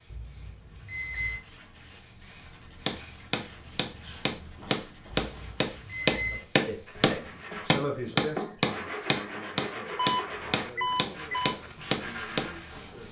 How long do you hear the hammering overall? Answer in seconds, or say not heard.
10 s.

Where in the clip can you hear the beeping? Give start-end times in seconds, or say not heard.
0.1-1.4, 5.2-6.4, 9.9-11.6.